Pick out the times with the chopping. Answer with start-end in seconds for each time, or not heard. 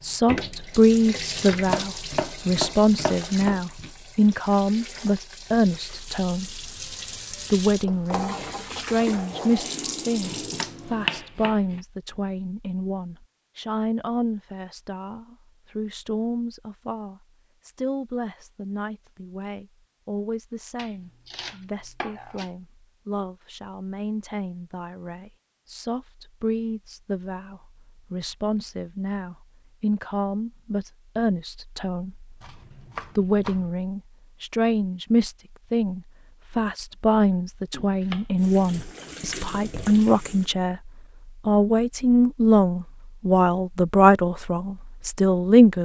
1.5-3.9, 10.2-11.8, 20.8-22.5, 32.4-33.7, 37.7-38.2.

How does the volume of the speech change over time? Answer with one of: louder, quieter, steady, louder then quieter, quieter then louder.
quieter then louder.